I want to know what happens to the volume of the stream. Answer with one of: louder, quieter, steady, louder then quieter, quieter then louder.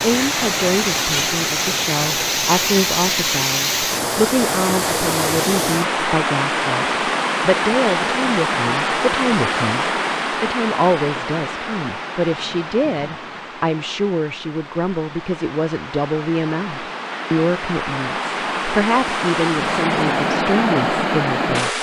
quieter then louder.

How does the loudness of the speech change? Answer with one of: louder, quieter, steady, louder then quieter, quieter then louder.
steady.